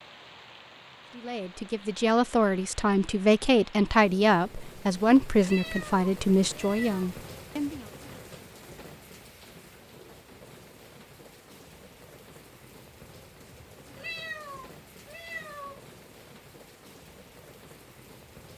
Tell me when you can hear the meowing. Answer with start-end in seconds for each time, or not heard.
5.4-7.1, 13.9-15.8.